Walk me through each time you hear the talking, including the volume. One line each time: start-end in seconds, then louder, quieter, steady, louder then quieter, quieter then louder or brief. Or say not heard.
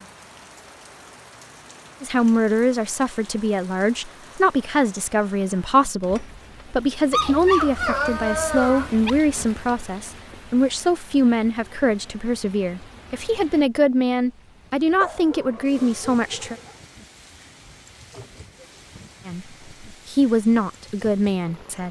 2.0-16.6 steady
19.2-21.8 brief.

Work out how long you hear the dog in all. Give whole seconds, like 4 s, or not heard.
4 s.